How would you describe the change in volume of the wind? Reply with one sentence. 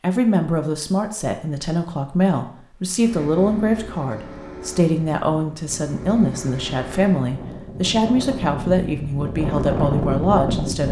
The loudness of the wind goes up.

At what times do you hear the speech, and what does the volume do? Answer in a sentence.
You can hear the speech from 0.0 to 10.8 s, at a steady volume.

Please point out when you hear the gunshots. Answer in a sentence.
You can't hear the gunshots here.